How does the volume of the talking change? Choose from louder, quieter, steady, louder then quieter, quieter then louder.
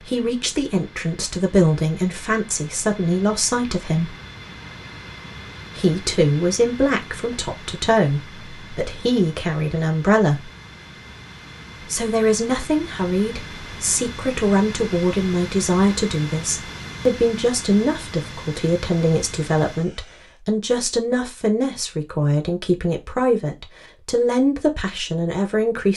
steady.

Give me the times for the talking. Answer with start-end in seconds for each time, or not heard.
0.0-4.1, 5.8-10.4, 11.8-25.9.